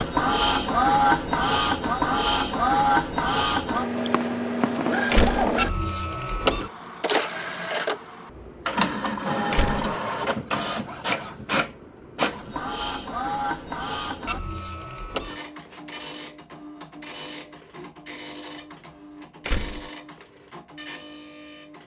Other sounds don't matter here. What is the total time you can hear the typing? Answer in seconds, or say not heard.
not heard.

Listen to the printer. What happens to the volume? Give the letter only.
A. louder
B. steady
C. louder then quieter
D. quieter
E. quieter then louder
D.